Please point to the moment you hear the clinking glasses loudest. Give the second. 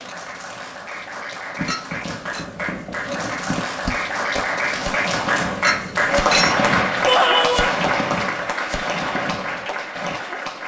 6 s.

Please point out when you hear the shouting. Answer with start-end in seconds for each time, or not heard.
7.0-7.8.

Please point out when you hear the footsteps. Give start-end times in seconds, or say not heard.
not heard.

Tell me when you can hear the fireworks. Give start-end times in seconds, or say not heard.
1.6-10.2.